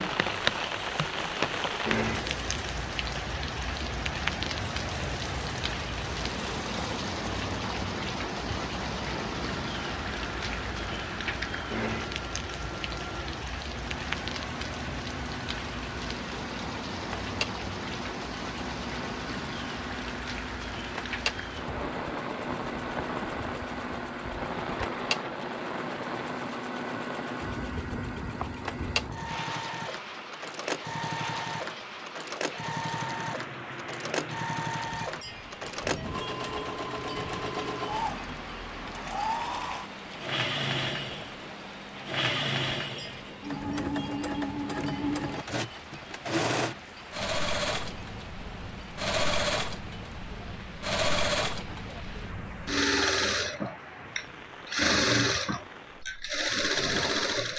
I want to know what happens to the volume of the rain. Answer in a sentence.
The volume of the rain goes down.